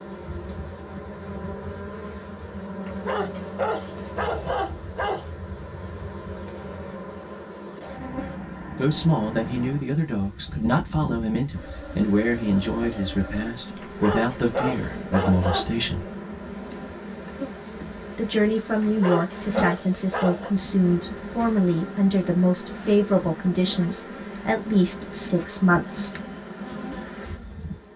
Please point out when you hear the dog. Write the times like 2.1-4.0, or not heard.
2.9-5.2, 13.8-15.8, 18.8-20.6.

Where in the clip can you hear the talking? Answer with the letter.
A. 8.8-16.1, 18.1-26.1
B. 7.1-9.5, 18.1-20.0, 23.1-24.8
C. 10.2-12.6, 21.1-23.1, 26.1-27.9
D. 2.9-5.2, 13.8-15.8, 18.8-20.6
A.